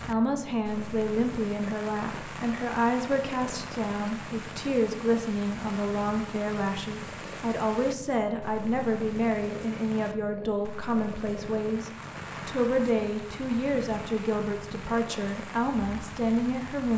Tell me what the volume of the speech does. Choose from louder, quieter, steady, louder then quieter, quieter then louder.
steady.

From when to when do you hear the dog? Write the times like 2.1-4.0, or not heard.
not heard.